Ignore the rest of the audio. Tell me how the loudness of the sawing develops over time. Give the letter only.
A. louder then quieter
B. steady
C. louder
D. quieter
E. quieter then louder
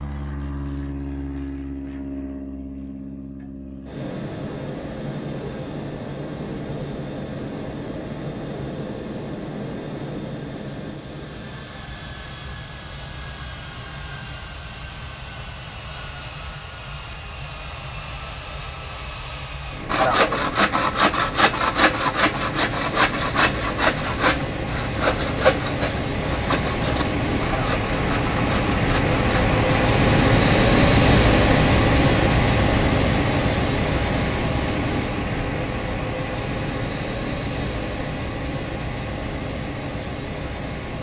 D.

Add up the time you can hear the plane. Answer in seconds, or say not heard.
41 s.